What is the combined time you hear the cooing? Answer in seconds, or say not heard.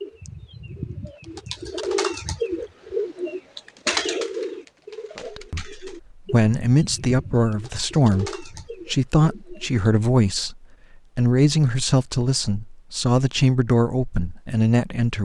10 s.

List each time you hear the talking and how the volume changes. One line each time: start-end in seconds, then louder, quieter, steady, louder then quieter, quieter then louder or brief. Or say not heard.
5.3-15.2 steady.